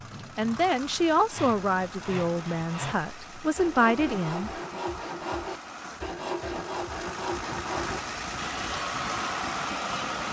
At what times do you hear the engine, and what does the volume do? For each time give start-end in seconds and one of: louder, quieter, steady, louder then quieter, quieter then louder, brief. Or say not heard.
0.0-10.2 louder.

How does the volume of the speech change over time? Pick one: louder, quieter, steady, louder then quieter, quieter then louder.
quieter then louder.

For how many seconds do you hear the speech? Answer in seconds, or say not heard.
4 s.